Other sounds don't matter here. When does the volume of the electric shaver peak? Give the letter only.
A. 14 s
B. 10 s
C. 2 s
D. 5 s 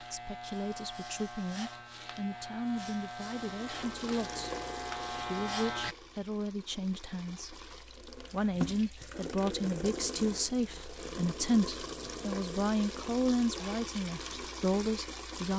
D.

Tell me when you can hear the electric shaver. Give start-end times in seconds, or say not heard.
0.0-6.0.